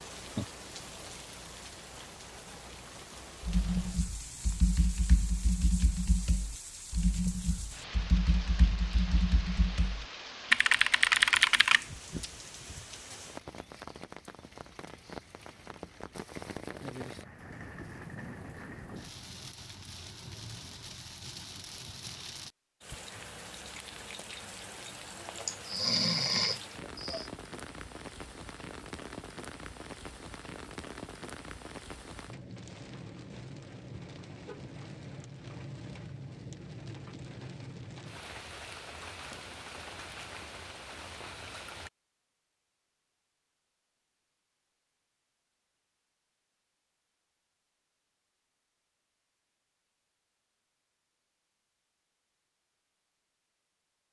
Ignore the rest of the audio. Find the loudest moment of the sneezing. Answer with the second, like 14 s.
26 s.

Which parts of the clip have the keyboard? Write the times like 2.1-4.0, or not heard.
3.4-12.2.